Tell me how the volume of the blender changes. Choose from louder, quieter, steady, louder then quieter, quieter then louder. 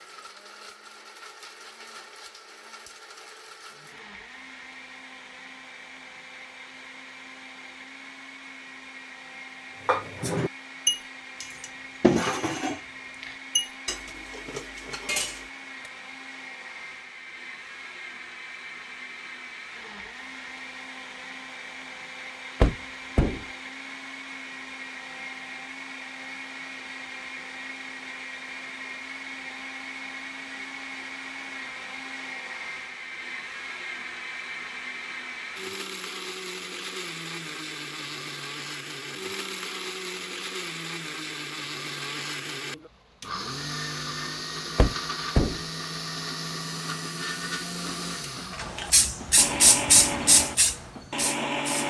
louder.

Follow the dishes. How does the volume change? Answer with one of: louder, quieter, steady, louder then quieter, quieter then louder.
quieter.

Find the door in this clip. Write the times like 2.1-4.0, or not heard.
22.6-23.4, 44.8-45.6.